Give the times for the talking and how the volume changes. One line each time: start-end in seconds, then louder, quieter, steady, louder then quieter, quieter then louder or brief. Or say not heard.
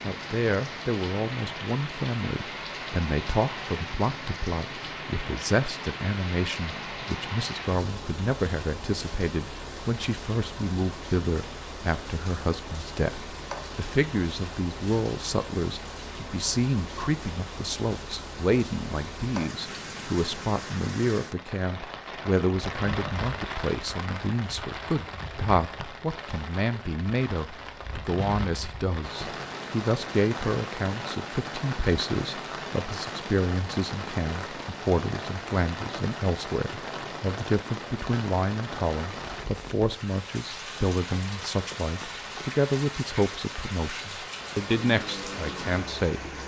0.0-46.2 steady.